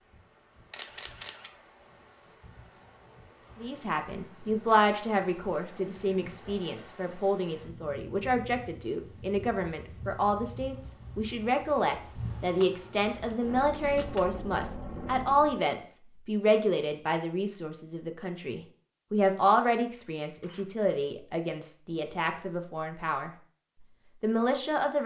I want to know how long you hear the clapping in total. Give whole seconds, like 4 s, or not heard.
not heard.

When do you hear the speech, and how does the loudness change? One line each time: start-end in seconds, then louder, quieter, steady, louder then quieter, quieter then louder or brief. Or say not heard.
3.6-23.3 steady
24.2-25.0 brief.